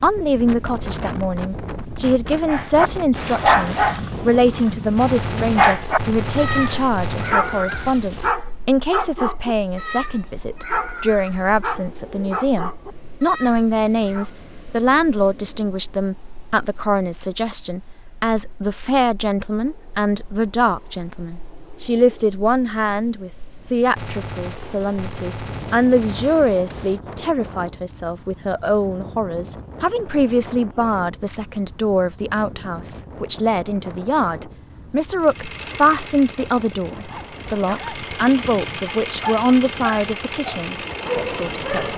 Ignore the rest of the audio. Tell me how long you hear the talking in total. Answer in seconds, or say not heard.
42 s.